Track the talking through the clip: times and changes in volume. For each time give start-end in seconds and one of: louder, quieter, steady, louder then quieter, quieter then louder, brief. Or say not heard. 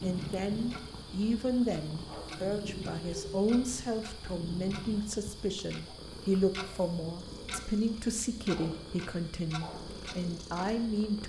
0.0-11.2 steady.